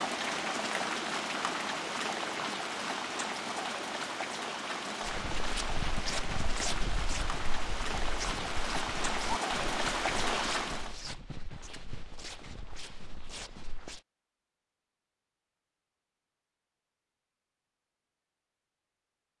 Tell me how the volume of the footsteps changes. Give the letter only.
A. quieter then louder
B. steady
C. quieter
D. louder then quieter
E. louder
C.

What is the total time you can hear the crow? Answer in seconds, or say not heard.
not heard.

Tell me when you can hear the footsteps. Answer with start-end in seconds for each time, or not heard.
5.0-14.0.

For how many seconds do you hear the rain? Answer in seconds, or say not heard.
11 s.